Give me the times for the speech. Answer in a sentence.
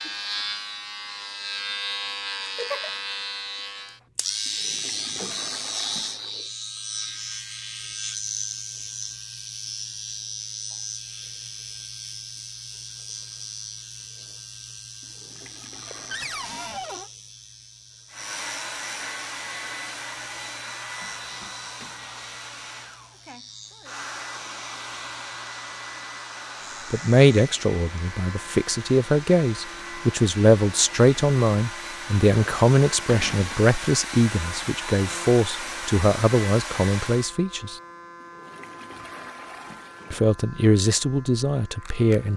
The speech can be heard from 26.9 to 37.8 s and from 40.1 to 42.3 s.